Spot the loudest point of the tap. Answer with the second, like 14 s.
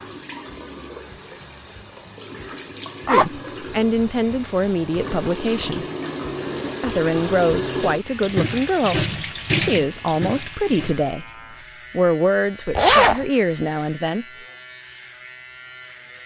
9 s.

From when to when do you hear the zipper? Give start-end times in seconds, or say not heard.
3.0-3.6, 12.8-13.2.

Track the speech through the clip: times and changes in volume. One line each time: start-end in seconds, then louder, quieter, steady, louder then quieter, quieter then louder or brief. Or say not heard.
3.0-5.8 brief
6.8-11.2 steady
11.9-14.2 brief.